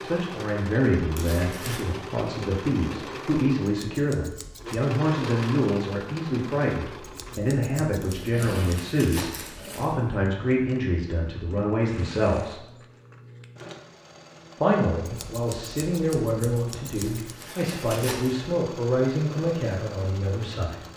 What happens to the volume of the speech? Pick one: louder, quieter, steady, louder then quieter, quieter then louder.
steady.